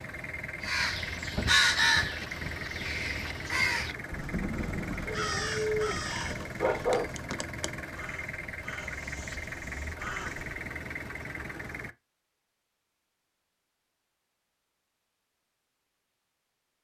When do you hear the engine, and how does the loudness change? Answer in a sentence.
You can hear the engine from 0.0 to 11.9 s, at a steady volume.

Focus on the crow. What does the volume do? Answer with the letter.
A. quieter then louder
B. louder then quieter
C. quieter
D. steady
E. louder
C.